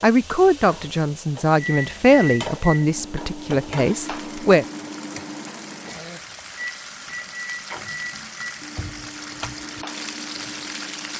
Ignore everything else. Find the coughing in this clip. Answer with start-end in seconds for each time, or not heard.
5.8-6.7.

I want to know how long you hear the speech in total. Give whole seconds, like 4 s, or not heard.
5 s.